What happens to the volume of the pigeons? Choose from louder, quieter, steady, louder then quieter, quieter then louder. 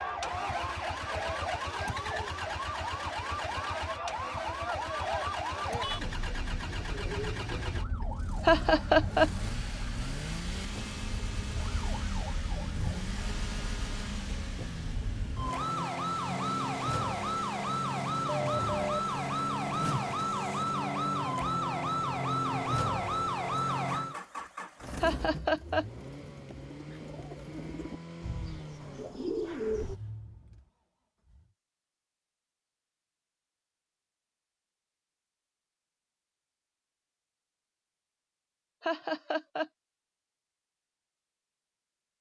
quieter then louder.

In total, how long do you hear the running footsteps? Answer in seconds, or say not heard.
not heard.